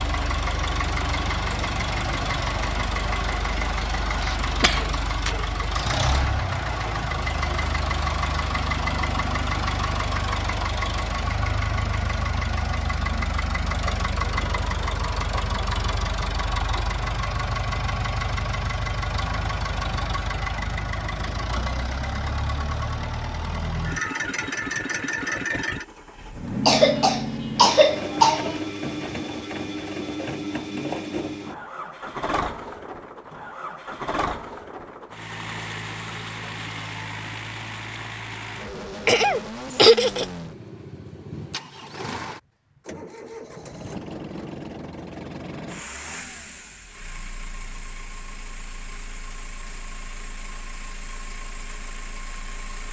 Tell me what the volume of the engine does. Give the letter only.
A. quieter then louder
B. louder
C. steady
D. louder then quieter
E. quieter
E.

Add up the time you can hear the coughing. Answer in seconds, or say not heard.
4 s.